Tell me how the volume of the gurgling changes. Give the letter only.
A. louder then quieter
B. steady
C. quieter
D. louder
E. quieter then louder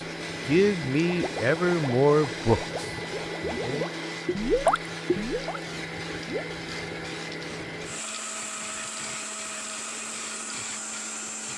A.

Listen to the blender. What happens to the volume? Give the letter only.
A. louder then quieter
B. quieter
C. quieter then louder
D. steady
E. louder
D.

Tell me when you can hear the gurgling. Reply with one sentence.
You can hear the gurgling from 1.1 to 6.5 s.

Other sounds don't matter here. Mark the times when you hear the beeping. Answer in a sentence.
The beeping can't be heard in this clip.